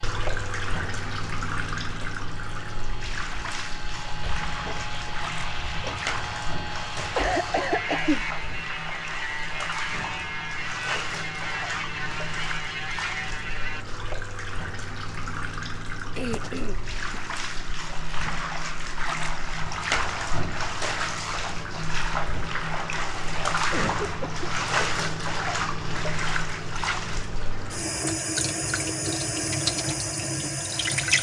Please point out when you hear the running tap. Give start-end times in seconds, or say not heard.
0.0-31.1.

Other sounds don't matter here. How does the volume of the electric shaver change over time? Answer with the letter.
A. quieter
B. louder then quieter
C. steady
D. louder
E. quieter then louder
D.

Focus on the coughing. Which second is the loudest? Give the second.
7 s.